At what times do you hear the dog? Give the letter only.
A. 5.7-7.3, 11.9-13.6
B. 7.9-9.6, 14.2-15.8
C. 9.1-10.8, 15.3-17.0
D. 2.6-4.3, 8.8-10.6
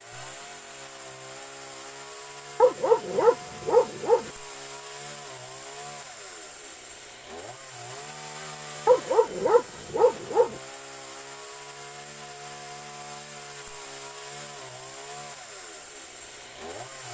D.